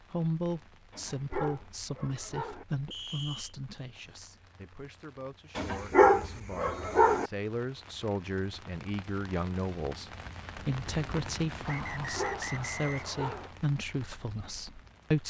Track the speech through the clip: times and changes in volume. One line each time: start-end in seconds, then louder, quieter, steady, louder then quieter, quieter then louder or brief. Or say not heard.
0.1-15.2 quieter then louder.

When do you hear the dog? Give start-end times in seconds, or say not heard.
0.9-2.6, 5.5-7.3, 12.0-13.5.